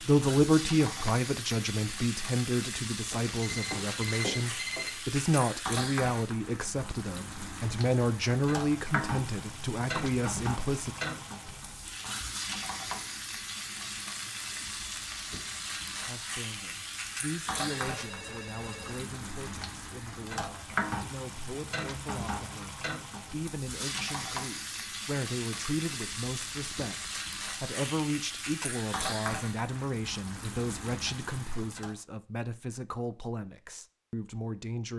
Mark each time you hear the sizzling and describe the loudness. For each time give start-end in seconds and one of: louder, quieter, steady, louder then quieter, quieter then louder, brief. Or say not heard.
0.0-31.9 steady.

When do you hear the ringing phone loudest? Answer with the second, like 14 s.
4 s.